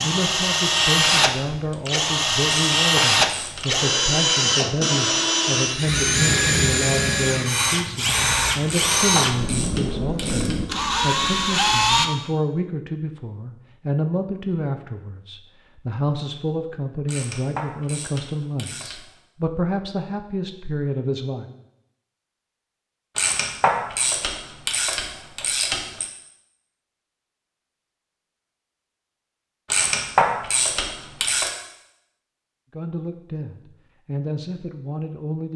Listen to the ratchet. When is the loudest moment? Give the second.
30 s.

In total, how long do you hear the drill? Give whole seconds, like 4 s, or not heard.
12 s.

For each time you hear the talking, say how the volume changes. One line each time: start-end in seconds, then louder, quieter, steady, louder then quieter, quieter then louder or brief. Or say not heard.
0.0-21.5 steady
32.7-35.5 brief.